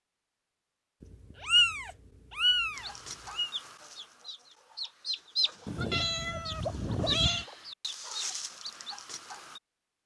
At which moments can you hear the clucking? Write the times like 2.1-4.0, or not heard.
2.8-9.6.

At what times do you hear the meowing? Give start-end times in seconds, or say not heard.
1.0-3.5, 5.7-7.5.